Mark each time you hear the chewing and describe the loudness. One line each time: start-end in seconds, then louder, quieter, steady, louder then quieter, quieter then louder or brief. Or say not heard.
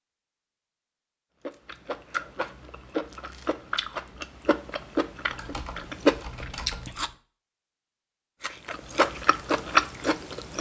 1.4-7.1 louder
8.4-10.5 brief.